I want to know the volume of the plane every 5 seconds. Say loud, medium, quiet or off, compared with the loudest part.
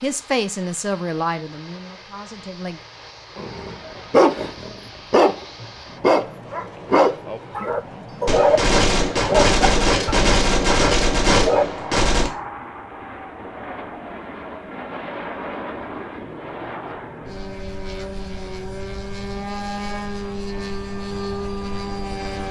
quiet, medium, medium, loud, loud.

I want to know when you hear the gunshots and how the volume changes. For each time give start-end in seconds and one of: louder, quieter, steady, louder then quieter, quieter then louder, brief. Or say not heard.
8.2-12.3 steady.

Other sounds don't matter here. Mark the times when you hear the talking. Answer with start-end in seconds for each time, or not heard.
0.0-2.8.